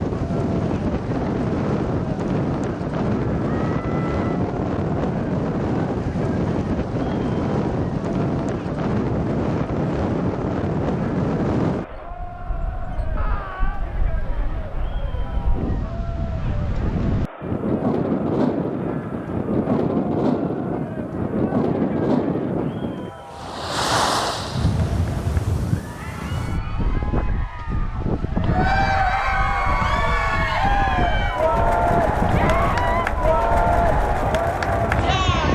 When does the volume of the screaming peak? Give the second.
33 s.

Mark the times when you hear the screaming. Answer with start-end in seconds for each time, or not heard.
3.6-4.5, 13.2-13.8, 32.3-33.1.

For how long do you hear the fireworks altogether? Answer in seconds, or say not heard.
not heard.